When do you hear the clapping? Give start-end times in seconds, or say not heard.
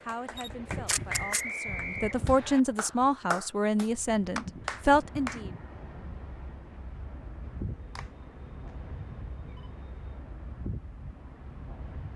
0.0-5.5.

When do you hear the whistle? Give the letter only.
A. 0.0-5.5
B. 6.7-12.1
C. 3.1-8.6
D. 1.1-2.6
D.